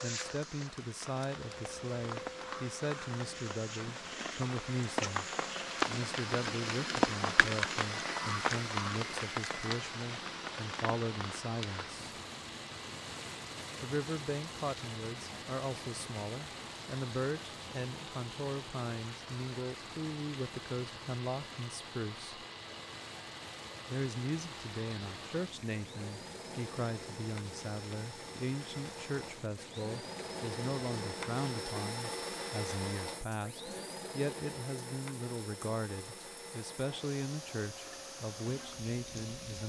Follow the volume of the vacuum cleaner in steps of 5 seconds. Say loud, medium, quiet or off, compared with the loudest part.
medium, medium, medium, medium, medium, medium, loud, medium.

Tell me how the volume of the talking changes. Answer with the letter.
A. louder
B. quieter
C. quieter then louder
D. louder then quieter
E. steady
E.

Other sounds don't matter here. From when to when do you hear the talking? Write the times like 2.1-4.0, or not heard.
0.0-5.2, 5.8-11.9, 13.8-22.4, 23.9-39.6.